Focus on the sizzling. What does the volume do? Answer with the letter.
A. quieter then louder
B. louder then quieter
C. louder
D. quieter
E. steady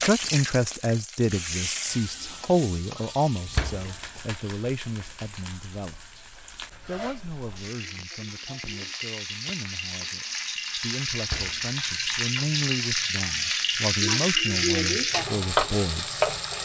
A.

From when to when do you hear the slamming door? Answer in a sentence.
The slamming door can be heard from 3.5 to 4.0 s and from 11.2 to 11.7 s.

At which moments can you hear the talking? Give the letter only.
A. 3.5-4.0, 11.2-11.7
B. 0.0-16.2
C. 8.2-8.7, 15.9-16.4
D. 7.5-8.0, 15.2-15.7
B.